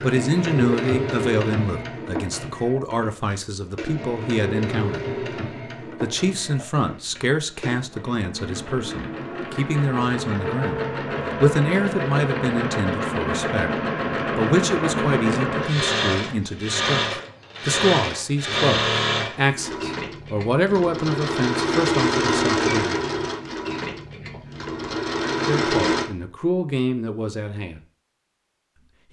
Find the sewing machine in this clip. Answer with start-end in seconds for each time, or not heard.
0.0-26.1.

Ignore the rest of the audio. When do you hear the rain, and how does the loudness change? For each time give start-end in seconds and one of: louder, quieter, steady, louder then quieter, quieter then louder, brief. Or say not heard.
not heard.